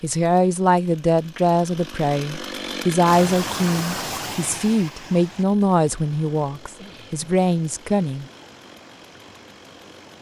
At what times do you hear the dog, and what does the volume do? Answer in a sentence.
You can't hear the dog here.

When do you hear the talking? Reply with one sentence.
The talking can be heard from 0.0 to 8.2 s.